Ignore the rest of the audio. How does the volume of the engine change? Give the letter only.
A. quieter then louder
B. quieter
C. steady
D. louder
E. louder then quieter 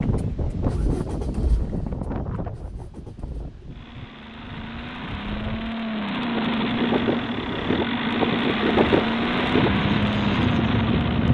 A.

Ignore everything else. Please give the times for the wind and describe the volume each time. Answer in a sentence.
The wind can be heard from 0.0 to 11.3 s, getting quieter then louder.